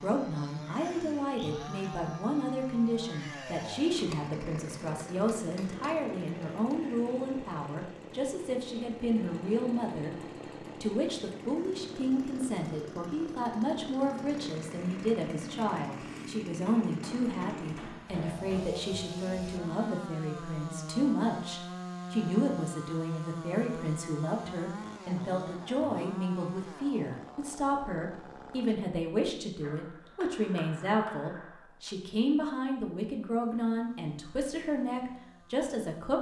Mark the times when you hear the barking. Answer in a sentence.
The barking can't be heard in this clip.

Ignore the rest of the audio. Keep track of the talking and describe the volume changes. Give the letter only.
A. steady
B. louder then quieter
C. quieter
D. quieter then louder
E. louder
A.